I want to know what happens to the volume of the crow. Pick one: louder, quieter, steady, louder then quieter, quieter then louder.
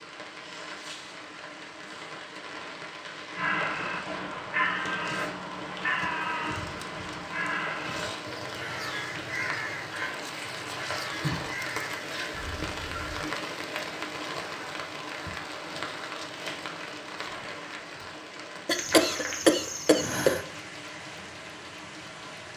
quieter.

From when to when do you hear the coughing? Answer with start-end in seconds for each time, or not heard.
18.6-20.4.